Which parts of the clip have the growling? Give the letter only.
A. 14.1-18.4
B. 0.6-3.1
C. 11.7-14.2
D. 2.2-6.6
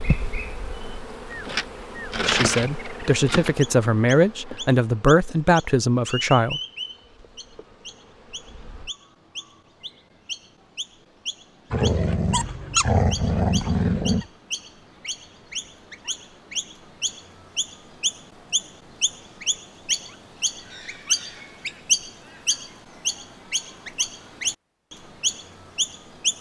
C.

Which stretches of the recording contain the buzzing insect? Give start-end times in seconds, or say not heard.
0.0-8.9.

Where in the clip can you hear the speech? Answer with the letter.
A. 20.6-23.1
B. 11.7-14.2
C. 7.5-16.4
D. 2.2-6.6
D.